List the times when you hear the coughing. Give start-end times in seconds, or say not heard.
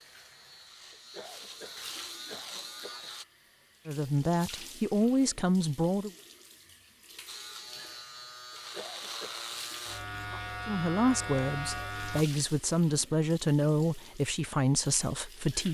0.9-3.1, 8.5-9.4.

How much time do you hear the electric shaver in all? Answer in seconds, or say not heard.
8 s.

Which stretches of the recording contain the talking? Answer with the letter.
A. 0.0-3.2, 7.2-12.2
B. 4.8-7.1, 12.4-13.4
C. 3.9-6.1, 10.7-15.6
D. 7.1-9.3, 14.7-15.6
C.